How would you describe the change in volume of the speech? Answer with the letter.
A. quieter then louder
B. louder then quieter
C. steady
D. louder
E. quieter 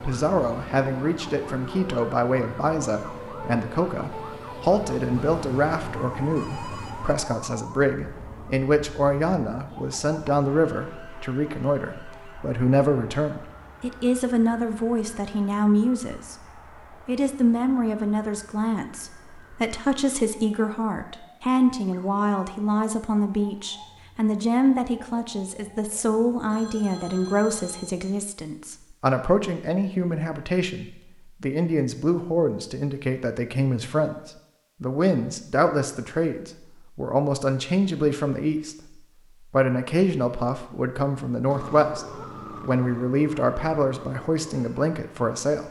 C.